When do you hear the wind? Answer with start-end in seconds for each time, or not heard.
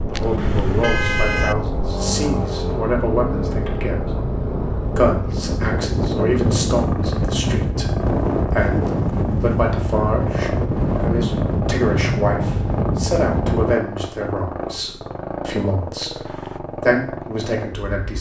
0.0-13.8.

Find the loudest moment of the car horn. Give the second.
1 s.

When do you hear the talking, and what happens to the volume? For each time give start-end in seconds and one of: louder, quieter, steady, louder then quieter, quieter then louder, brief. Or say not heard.
0.1-18.1 steady.